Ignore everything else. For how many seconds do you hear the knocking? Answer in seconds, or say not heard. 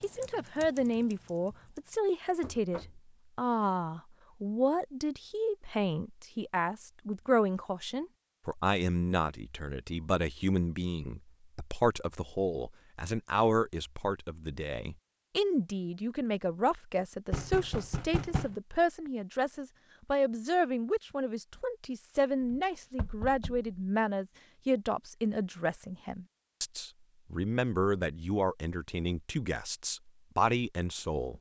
3 s.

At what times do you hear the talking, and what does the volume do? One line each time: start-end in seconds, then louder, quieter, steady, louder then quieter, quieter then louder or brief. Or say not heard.
0.0-31.3 steady.